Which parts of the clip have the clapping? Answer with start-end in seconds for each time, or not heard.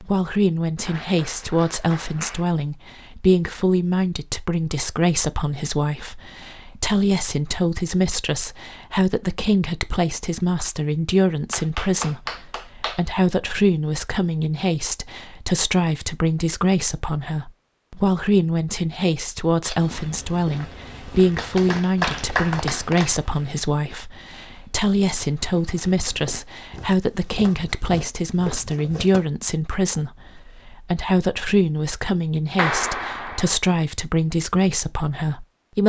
0.8-2.5, 11.5-13.0, 21.4-23.2, 32.5-33.6.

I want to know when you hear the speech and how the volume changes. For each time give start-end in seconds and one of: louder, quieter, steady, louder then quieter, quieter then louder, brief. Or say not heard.
0.0-35.8 steady.